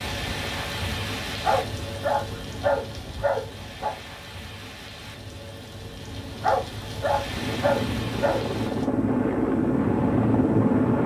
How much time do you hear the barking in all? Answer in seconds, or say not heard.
5 s.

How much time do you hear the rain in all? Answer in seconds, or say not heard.
9 s.